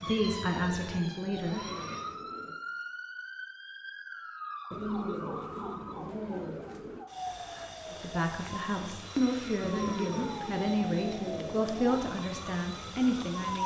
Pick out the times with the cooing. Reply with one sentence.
The cooing can be heard from 0.1 to 2.6 s, from 4.7 to 7.0 s and from 9.6 to 12.1 s.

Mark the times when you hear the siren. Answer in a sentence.
The siren can be heard from 0.0 to 13.6 s.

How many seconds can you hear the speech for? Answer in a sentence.
You can hear the speech for 7 seconds altogether.